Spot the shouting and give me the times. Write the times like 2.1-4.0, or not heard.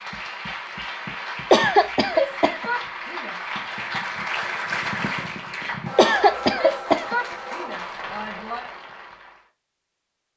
2.0-3.4, 6.5-8.7.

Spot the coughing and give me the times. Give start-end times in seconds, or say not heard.
1.5-2.7, 6.0-7.2.